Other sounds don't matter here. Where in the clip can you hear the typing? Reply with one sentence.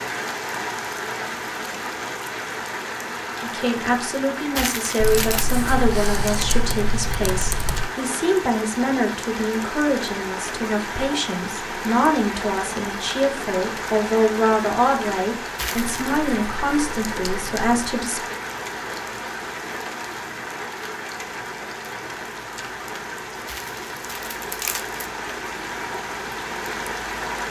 The typing can be heard from 5.0 to 7.9 s and from 15.8 to 17.9 s.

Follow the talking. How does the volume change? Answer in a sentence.
The loudness of the talking stays about the same.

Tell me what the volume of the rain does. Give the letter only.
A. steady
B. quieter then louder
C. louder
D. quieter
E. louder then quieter
A.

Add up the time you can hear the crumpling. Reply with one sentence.
The crumpling can be heard for 3 seconds in total.